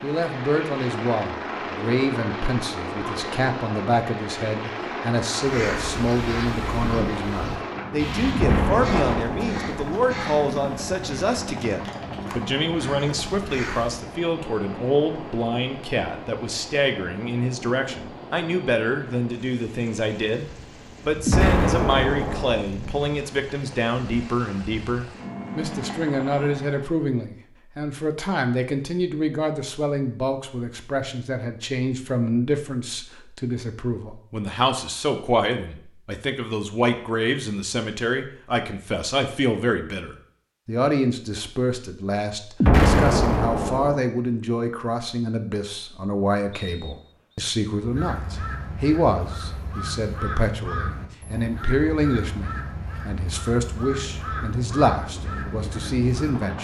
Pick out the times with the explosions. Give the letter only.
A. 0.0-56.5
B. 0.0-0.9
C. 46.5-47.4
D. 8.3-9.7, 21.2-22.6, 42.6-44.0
D.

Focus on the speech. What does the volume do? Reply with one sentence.
The volume of the speech stays about the same.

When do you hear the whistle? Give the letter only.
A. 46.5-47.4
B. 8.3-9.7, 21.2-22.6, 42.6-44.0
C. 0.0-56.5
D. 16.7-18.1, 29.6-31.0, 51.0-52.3
A.